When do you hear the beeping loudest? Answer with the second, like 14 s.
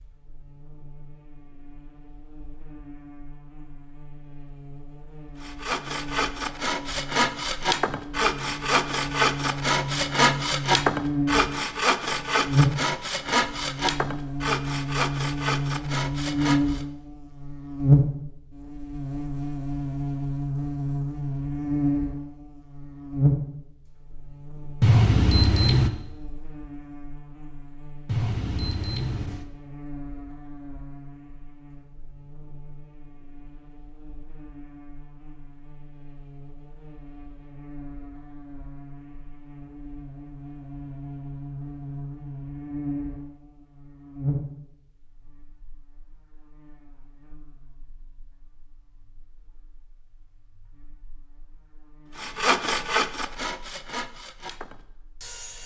25 s.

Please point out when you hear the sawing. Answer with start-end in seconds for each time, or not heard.
5.4-16.9, 52.1-55.6.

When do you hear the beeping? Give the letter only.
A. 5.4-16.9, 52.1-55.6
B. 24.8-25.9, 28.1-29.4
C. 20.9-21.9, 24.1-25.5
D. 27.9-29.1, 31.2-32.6
B.